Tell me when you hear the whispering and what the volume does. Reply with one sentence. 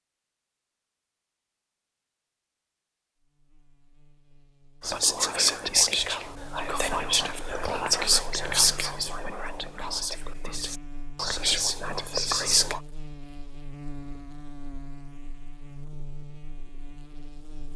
The whispering can be heard from 4.8 to 12.8 s, getting quieter then louder.